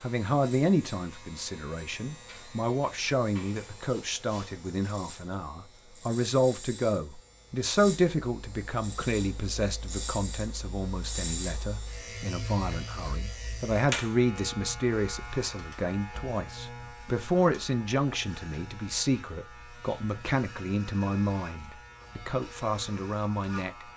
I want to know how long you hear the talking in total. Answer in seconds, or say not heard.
24 s.